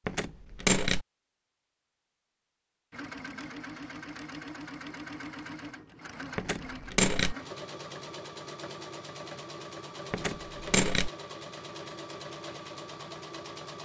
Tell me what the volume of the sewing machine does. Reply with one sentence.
The loudness of the sewing machine stays about the same.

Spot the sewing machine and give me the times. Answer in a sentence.
You can hear the sewing machine from 2.9 to 13.7 s.